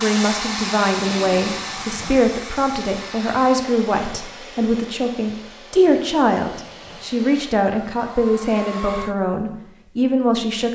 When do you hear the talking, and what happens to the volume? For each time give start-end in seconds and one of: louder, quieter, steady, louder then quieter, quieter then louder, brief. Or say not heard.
0.0-10.7 steady.